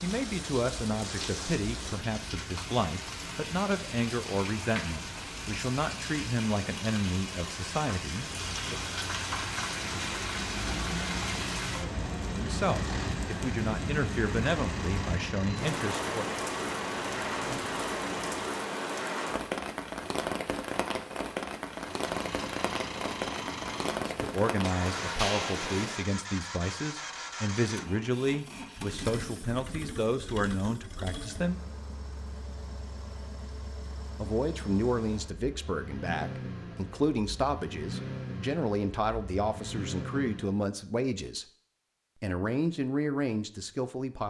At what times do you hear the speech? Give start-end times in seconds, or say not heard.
0.0-8.8, 12.2-16.2, 23.9-31.6, 34.2-41.5, 42.2-44.2.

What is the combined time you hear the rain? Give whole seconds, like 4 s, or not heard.
26 s.